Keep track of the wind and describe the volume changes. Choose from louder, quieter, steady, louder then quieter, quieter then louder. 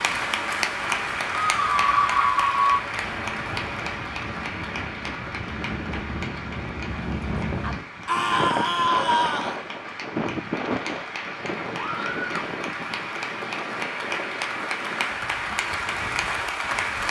louder then quieter.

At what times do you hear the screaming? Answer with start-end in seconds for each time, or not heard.
1.6-2.8, 8.1-9.6, 11.8-12.5.